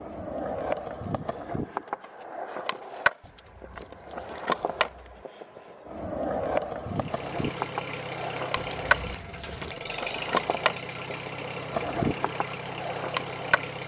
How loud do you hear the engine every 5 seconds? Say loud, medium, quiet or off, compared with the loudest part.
off, loud, loud.